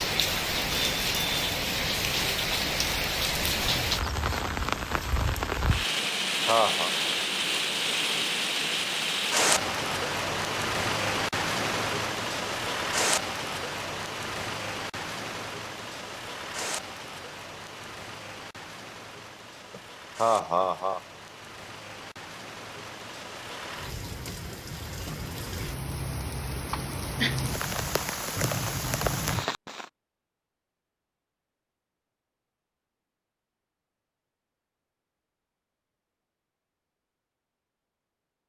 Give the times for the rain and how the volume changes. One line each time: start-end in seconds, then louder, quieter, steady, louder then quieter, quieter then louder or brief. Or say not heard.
0.0-29.9 quieter then louder.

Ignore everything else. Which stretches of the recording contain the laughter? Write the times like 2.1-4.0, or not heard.
6.0-6.9, 19.7-21.0, 26.7-27.4.